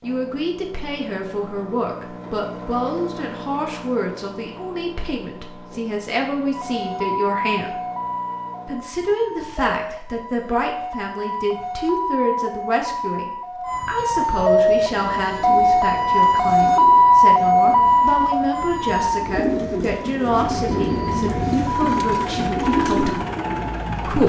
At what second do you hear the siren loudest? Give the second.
17 s.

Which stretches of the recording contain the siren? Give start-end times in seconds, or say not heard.
6.5-24.2.